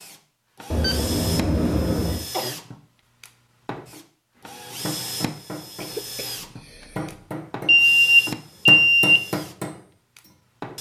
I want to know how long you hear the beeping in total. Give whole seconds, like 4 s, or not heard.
3 s.